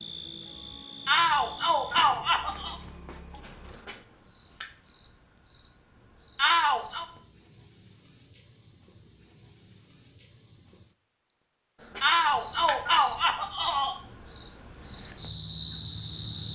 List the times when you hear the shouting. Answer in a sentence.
The shouting can be heard from 1.1 to 2.8 s, from 6.3 to 7.0 s and from 12.0 to 14.0 s.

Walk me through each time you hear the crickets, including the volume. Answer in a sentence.
You can hear the crickets from 0.0 to 16.5 s, getting louder.